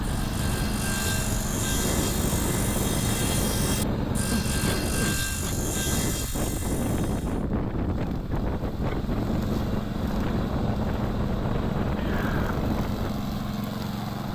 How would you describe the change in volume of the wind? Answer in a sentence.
The loudness of the wind stays about the same.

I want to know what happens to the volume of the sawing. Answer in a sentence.
The loudness of the sawing stays about the same.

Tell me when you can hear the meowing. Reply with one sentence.
The meowing can't be heard in this clip.